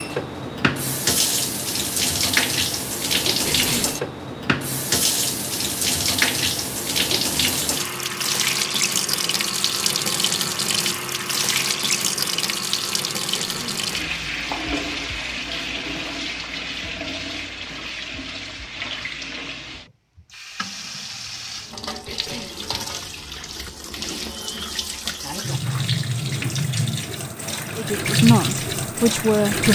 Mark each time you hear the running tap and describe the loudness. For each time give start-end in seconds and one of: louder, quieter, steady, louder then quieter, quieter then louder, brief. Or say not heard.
0.0-29.7 quieter then louder.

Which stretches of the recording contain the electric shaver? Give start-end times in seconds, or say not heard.
not heard.